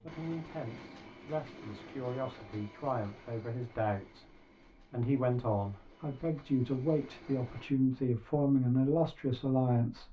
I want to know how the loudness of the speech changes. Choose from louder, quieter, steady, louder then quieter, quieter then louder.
louder.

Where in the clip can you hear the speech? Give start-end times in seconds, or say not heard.
0.0-10.0.